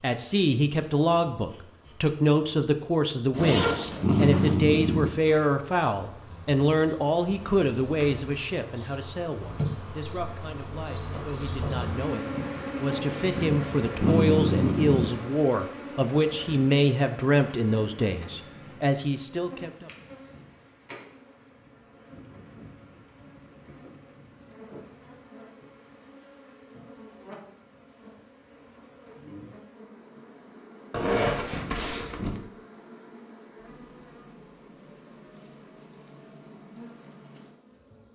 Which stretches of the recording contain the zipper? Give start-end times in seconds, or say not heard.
3.3-4.6, 30.9-32.4.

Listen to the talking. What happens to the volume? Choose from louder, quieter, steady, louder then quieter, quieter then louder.
quieter then louder.